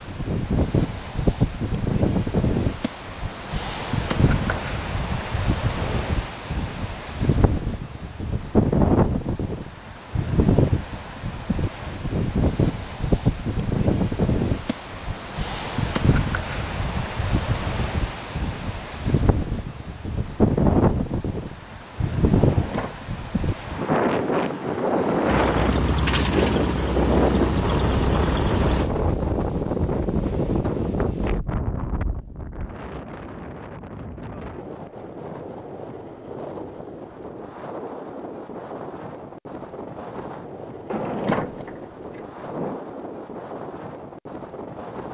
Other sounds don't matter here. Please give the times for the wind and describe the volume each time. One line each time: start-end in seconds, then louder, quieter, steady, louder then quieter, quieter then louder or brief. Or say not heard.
0.0-45.0 quieter.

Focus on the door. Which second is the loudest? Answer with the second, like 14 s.
41 s.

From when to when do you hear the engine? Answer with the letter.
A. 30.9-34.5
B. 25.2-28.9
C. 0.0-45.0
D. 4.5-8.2
B.